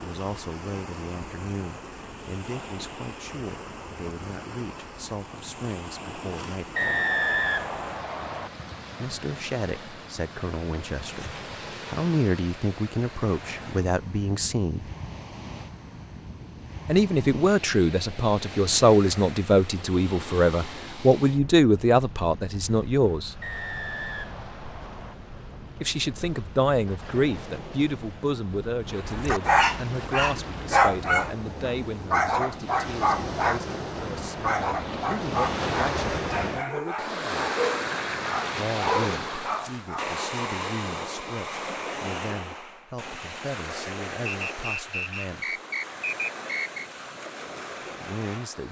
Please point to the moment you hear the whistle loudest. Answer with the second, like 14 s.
7 s.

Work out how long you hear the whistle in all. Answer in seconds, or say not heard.
6 s.